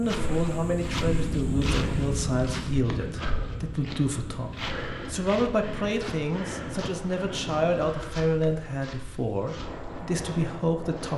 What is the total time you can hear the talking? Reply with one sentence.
The talking can be heard for 11 seconds in total.